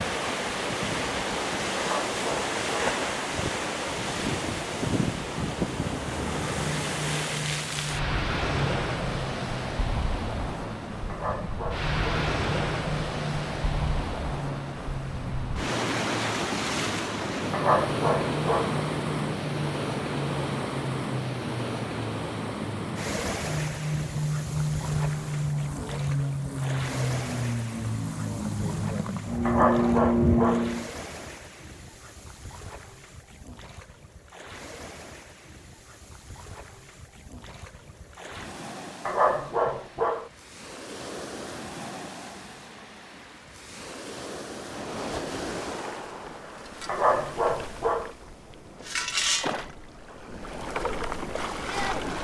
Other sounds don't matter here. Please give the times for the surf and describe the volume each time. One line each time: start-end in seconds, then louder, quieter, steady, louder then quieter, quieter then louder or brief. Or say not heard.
0.0-52.1 quieter then louder.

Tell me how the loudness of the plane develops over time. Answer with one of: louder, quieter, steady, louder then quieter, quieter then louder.
louder.